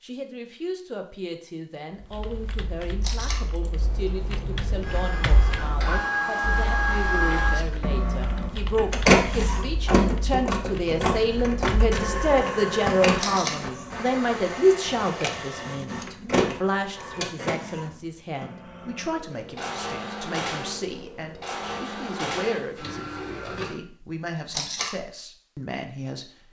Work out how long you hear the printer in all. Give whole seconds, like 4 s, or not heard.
19 s.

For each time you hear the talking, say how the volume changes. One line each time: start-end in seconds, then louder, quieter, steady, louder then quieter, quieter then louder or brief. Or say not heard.
0.0-26.4 louder then quieter.